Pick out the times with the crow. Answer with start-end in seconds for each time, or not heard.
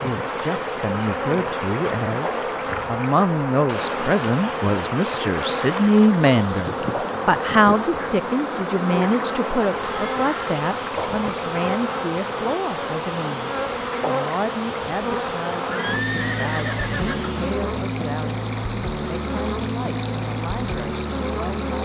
not heard.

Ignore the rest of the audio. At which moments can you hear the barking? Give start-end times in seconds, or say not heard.
not heard.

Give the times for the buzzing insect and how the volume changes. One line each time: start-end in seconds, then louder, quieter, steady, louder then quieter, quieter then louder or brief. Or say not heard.
0.0-21.8 steady.